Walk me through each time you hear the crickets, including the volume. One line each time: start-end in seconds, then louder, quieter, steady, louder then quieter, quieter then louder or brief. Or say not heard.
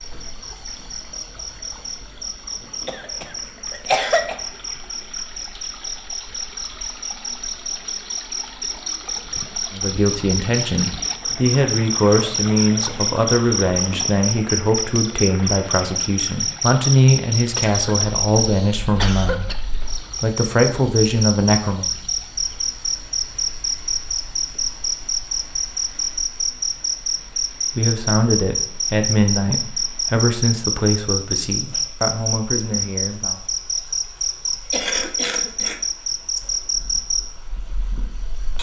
0.0-38.5 louder.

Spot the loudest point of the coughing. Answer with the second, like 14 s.
4 s.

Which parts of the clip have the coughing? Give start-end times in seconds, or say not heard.
2.9-4.3, 17.6-19.6, 34.7-35.8.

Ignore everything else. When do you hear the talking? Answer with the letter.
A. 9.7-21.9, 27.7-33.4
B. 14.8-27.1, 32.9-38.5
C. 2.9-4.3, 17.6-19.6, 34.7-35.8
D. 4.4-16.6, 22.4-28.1
A.